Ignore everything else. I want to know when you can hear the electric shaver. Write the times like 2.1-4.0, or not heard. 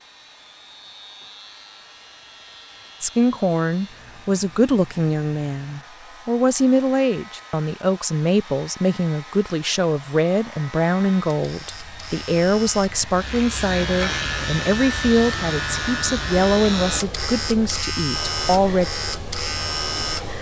0.0-20.3.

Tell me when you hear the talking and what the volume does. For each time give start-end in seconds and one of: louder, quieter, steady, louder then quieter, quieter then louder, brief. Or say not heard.
3.0-18.9 steady.